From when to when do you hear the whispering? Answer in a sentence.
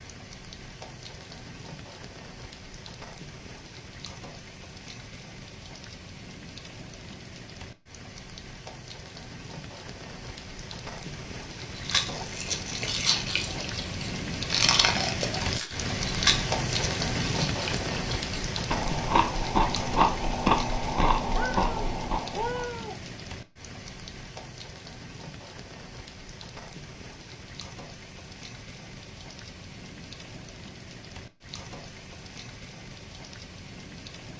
The whispering can't be heard in this clip.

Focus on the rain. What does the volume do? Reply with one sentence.
The volume of the rain goes up, then down.